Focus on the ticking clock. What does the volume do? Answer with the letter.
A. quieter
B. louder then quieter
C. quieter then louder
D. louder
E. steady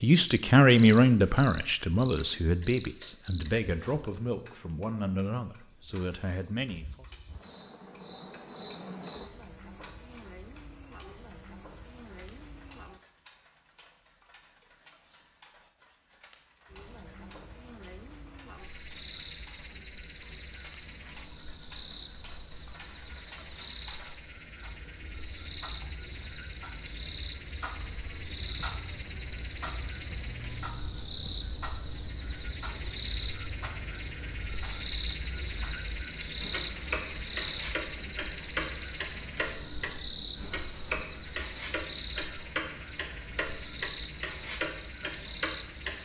D.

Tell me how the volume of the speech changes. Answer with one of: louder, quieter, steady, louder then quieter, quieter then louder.
quieter.